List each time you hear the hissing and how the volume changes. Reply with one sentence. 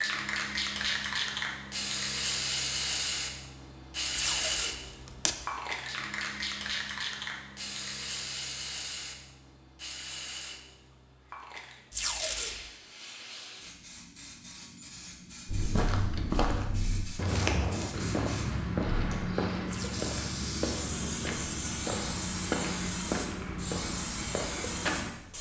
The hissing can be heard from 0.0 to 25.3 s, getting quieter then louder.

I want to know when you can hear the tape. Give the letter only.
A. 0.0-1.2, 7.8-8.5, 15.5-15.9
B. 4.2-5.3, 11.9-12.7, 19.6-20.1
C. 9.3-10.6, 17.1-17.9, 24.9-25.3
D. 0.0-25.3
B.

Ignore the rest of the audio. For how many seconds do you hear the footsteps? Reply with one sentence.
The footsteps can be heard for 10 seconds in total.